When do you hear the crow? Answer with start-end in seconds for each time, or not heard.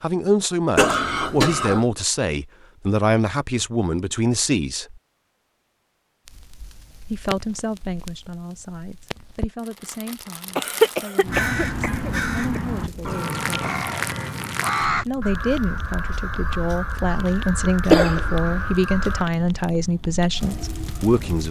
11.2-19.2.